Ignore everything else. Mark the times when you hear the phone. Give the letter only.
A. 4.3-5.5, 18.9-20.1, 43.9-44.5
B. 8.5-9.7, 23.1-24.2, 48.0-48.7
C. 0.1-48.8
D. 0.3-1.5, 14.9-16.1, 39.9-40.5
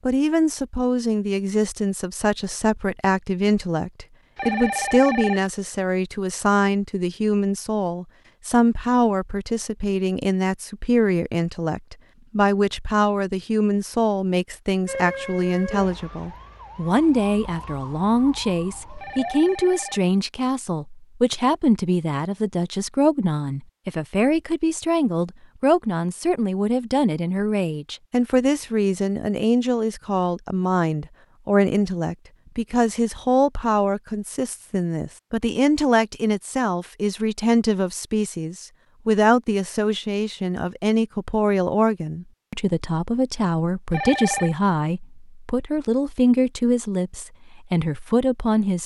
A.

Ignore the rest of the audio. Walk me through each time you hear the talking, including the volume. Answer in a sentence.
The talking can be heard from 0.1 to 48.8 s, at a steady volume.